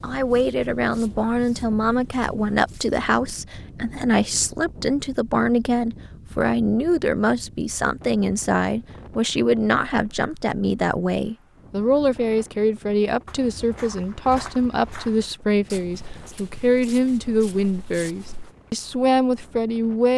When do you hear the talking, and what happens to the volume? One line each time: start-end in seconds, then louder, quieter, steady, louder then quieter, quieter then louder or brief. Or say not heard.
0.0-20.1 steady.